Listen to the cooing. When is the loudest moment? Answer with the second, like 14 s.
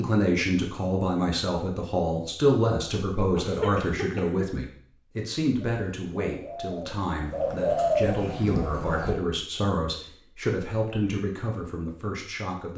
8 s.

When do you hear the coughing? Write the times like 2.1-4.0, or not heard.
3.4-4.5.